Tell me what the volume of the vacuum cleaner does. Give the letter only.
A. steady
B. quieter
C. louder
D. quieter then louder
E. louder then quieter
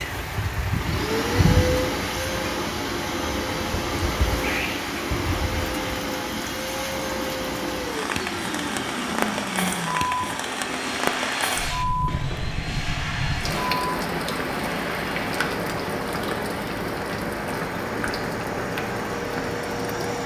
B.